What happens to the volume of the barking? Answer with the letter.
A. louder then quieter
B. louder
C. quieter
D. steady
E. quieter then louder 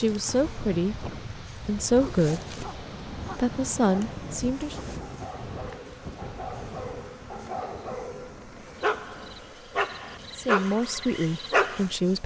B.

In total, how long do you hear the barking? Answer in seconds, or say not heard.
10 s.